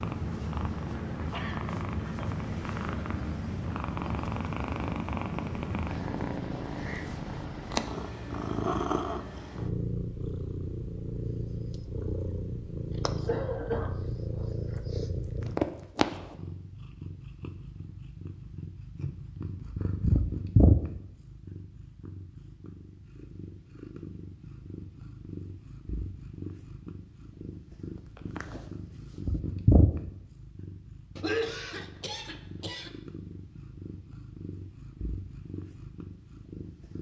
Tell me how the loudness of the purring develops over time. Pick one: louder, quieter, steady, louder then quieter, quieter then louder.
quieter then louder.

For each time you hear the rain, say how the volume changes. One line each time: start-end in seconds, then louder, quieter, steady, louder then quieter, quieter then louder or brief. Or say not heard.
not heard.